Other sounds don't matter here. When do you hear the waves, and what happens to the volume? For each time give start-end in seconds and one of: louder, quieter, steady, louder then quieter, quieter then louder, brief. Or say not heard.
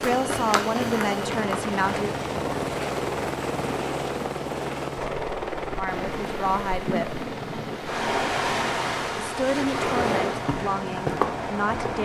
5.8-11.9 louder then quieter.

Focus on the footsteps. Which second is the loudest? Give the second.
11 s.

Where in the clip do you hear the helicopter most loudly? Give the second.
3 s.